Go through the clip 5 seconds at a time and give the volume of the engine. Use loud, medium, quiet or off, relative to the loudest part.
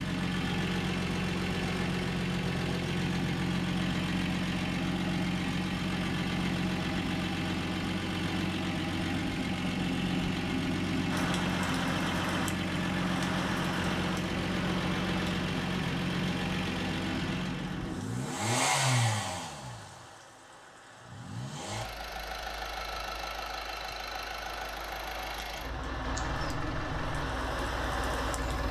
loud, loud, loud, loud, medium, medium.